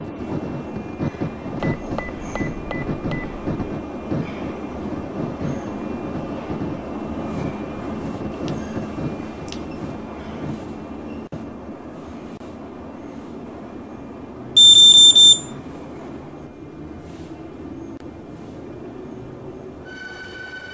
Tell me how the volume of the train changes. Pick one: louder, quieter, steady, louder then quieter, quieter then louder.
quieter.